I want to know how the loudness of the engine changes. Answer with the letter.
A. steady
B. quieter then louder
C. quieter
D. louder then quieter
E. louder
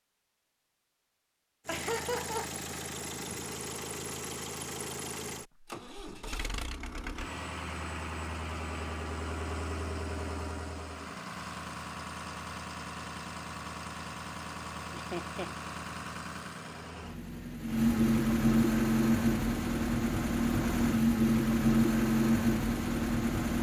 E.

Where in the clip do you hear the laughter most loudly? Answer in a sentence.
The loudest moment of the laughter is at 2 seconds.